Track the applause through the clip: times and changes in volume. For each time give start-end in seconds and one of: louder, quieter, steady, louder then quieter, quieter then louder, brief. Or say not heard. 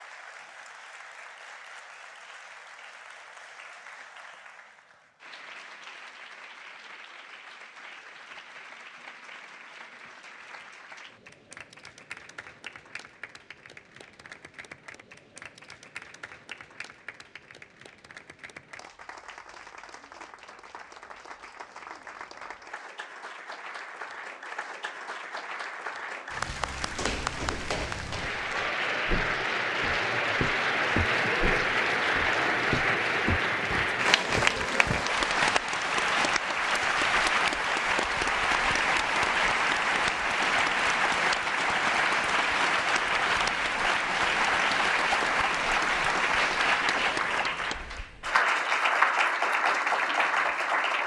0.0-51.0 louder.